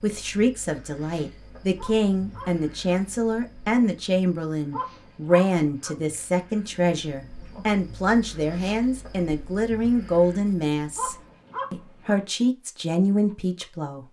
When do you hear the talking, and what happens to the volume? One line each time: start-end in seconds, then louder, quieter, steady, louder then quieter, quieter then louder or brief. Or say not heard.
0.0-14.0 steady.